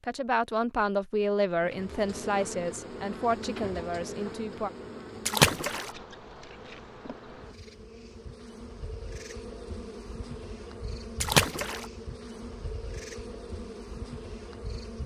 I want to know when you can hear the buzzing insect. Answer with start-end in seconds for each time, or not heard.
1.6-15.0.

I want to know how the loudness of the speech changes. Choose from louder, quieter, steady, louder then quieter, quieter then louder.
quieter.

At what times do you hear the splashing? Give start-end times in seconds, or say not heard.
5.2-5.9, 11.2-11.8.